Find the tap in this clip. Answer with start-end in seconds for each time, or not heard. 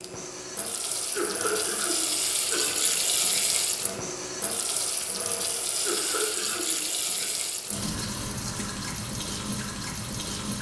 0.0-10.5.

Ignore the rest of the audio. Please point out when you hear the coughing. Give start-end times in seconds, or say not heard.
1.1-2.9, 5.8-7.3.